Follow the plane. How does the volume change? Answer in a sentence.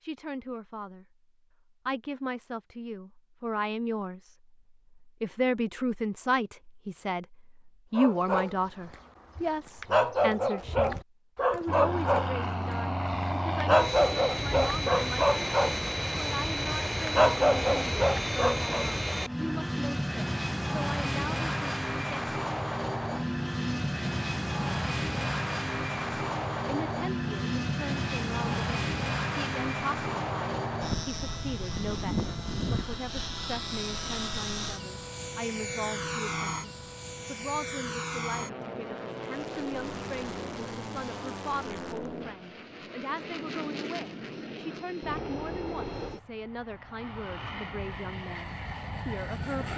The volume of the plane goes down.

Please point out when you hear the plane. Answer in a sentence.
You can hear the plane from 11.7 to 49.7 s.